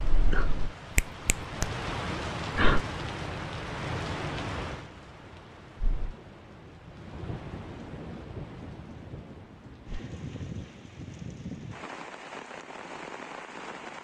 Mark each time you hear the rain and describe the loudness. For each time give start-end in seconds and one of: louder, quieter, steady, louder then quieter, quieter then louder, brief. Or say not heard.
0.0-13.9 quieter.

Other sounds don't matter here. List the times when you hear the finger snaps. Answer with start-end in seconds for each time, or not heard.
0.9-1.8.